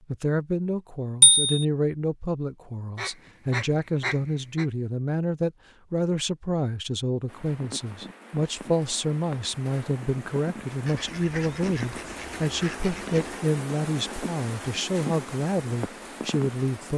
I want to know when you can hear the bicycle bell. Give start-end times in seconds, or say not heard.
1.2-1.6.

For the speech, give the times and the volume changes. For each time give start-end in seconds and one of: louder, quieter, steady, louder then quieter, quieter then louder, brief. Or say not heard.
0.1-16.9 steady.